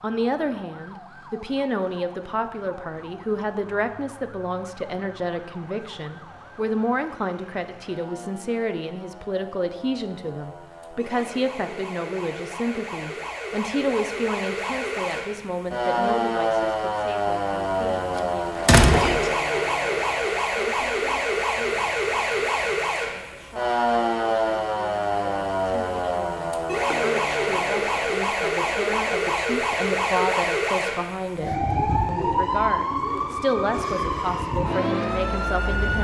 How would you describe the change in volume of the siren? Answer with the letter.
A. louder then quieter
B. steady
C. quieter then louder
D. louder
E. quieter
D.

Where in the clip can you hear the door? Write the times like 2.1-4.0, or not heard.
18.1-19.3.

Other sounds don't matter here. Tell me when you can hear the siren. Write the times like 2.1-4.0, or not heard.
0.0-36.0.